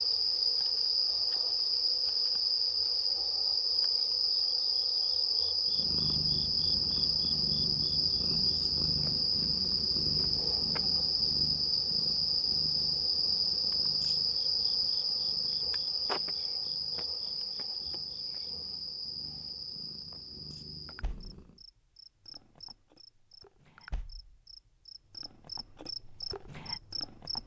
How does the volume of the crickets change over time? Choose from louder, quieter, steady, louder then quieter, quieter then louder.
quieter.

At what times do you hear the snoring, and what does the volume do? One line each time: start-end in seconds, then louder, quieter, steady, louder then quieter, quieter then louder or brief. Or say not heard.
not heard.